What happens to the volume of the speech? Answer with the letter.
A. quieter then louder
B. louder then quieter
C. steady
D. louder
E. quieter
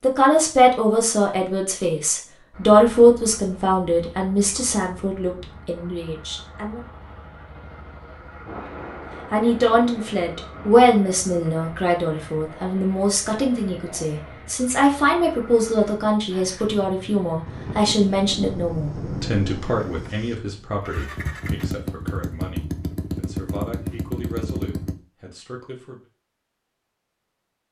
E.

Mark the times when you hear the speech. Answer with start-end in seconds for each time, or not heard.
0.0-6.8, 9.3-26.0.